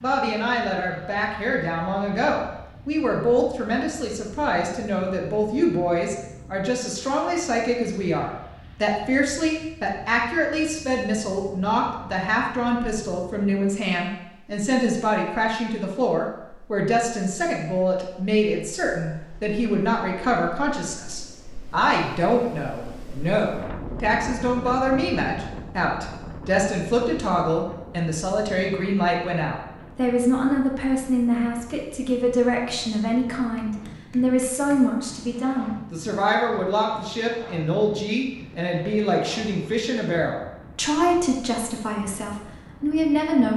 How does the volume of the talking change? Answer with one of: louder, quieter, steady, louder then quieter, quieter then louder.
steady.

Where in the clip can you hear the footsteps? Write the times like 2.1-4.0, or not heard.
not heard.